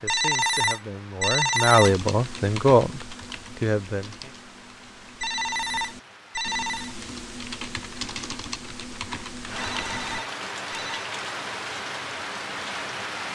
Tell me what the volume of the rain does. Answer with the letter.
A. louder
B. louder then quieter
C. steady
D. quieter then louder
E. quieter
A.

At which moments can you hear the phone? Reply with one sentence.
The phone can be heard from 0.1 to 1.9 s, from 5.2 to 7.0 s and from 9.6 to 11.1 s.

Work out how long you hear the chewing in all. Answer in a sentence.
The chewing can't be heard in this clip.